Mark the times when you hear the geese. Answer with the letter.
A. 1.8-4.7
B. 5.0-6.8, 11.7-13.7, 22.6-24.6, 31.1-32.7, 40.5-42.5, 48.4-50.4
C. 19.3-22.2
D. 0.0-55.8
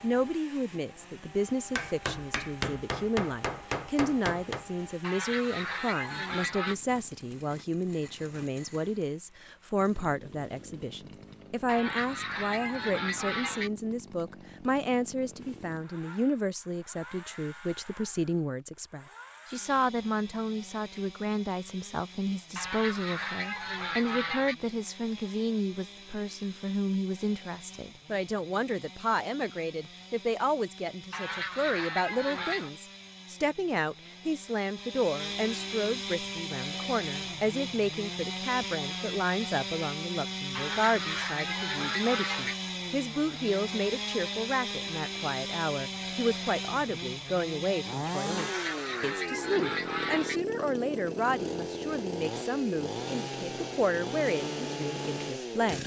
B.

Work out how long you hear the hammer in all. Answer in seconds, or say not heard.
3 s.